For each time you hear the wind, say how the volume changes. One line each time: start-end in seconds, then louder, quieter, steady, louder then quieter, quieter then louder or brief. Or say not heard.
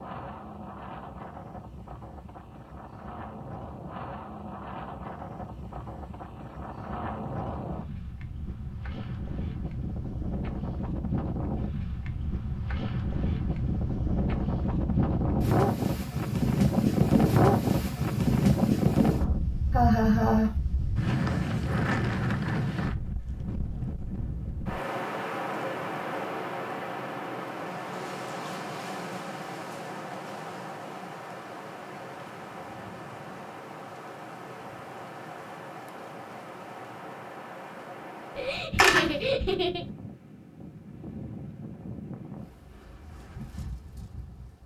0.0-44.6 louder then quieter.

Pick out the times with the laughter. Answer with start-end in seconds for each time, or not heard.
19.7-20.6, 38.4-39.9.